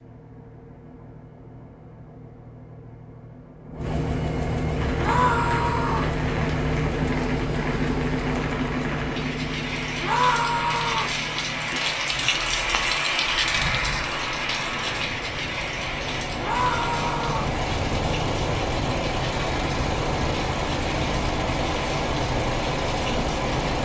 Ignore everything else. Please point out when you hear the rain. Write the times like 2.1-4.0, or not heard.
4.7-23.8.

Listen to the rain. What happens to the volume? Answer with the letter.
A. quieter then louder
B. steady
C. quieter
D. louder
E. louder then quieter
E.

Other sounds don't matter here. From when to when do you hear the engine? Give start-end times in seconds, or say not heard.
0.0-23.8.